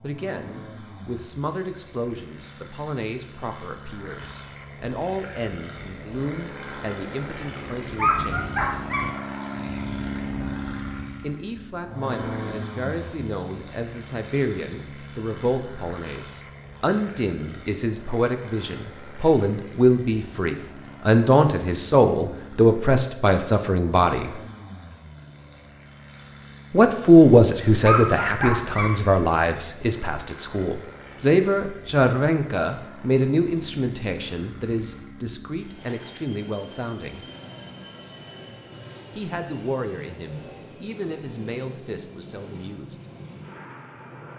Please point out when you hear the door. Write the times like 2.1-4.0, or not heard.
not heard.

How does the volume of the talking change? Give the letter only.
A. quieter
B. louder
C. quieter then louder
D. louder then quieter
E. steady
D.